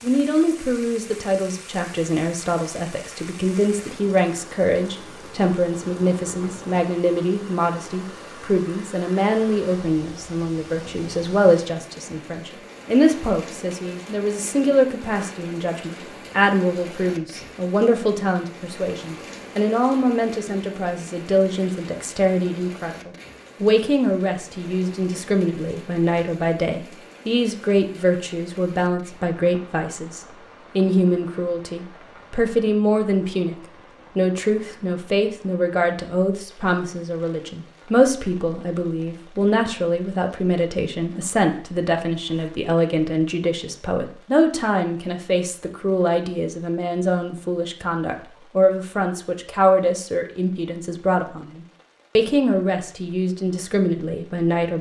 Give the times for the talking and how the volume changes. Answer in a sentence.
The talking can be heard from 0.0 to 33.5 s, at a steady volume; and from 34.1 to 54.7 s, at a steady volume.